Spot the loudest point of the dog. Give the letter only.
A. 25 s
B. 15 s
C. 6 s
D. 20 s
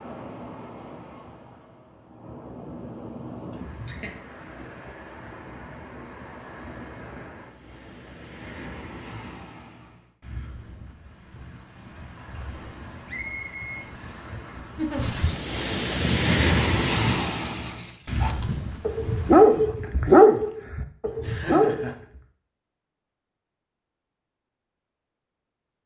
D.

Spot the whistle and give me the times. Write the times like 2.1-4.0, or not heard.
13.1-13.8.